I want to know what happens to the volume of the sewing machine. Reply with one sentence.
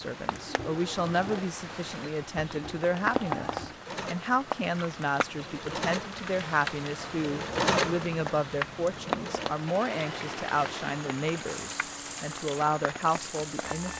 The volume of the sewing machine goes up, then down.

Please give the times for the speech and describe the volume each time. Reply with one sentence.
The speech can be heard from 0.0 to 13.9 s, at a steady volume.